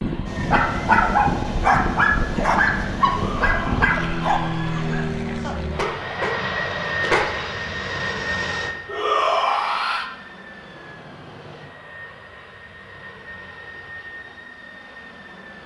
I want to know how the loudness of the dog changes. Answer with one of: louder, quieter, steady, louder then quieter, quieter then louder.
quieter then louder.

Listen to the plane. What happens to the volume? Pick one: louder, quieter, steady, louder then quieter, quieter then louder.
quieter.